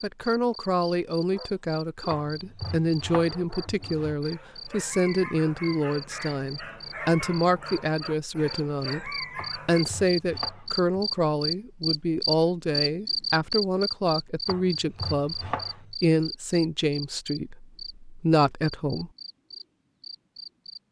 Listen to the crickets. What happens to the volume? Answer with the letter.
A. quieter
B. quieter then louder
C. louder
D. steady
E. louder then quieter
E.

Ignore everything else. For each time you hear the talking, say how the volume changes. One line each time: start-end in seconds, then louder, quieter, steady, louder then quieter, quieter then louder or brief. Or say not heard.
0.0-19.1 steady.